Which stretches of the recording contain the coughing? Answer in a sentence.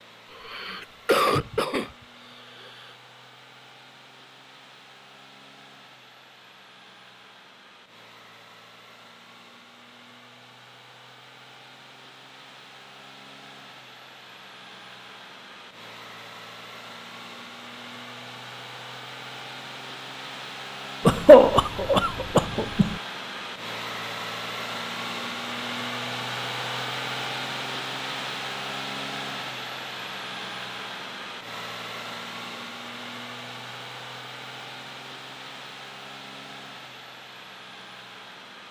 The coughing can be heard from 0.3 to 2.9 s and from 21.1 to 22.9 s.